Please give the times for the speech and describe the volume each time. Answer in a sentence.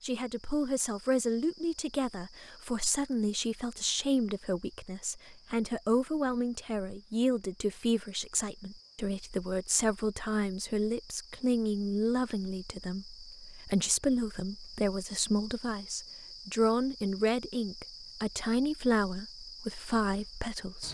The speech can be heard from 0.0 to 20.8 s, at a steady volume.